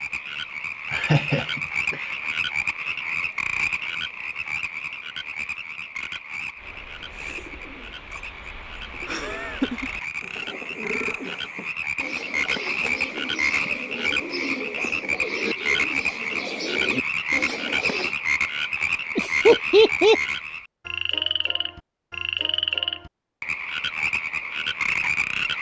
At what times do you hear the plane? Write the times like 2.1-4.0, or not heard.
not heard.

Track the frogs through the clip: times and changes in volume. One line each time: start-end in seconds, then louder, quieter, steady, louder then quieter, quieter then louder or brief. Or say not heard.
0.0-25.5 quieter then louder.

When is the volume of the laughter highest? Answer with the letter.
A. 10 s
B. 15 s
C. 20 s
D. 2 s
C.